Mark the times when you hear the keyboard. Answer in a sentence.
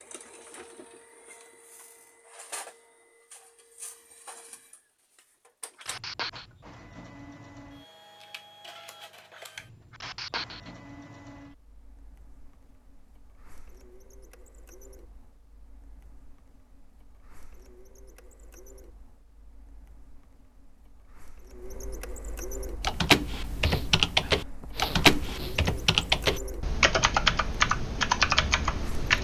You can hear the keyboard from 22.8 to 29.1 s.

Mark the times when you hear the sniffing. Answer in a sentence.
The sniffing can be heard from 5.8 to 6.5 s, from 9.9 to 10.7 s and from 23.6 to 25.6 s.